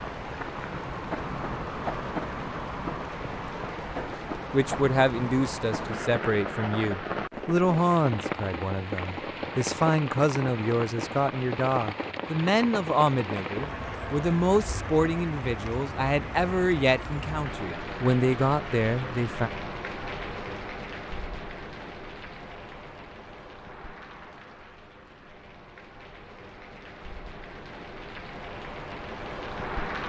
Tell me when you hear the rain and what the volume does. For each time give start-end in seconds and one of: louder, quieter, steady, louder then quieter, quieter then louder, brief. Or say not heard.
0.0-30.0 quieter.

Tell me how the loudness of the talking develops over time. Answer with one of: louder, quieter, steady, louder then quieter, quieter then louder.
steady.